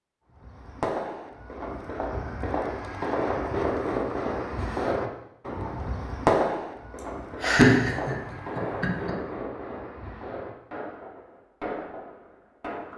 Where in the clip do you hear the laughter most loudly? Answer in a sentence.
The loudest moment of the laughter is at 8 seconds.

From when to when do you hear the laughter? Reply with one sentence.
You can hear the laughter from 7.4 to 9.2 s.